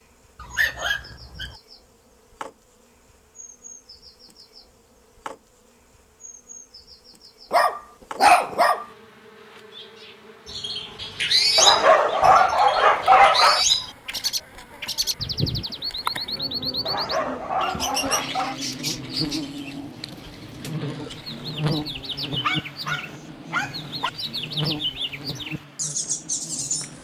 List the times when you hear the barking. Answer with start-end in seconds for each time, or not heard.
0.4-1.6, 7.5-8.8, 11.6-13.7, 16.9-18.6, 22.4-24.1.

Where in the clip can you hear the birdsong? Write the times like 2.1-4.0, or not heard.
10.4-26.9.